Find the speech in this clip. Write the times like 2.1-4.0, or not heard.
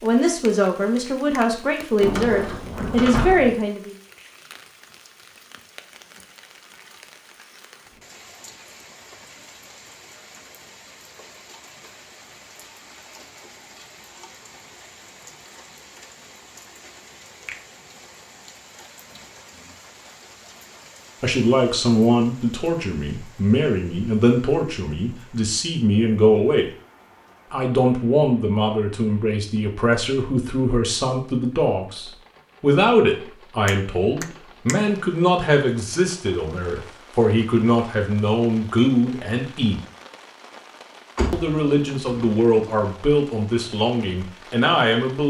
0.0-4.0, 21.2-26.7, 27.5-39.8, 41.3-45.2.